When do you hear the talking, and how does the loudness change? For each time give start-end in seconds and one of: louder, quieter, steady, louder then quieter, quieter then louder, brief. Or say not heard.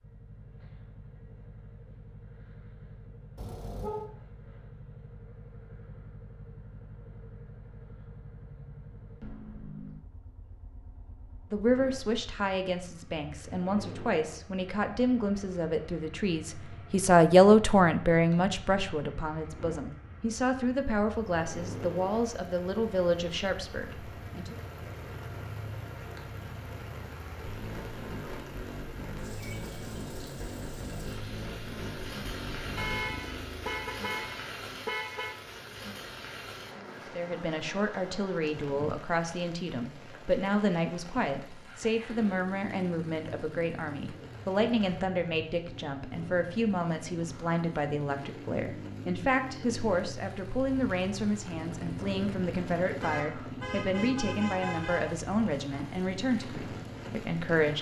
11.5-24.6 louder then quieter
37.1-57.7 steady.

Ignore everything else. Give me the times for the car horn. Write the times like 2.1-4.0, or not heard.
3.4-4.1, 32.8-35.4, 53.0-55.1.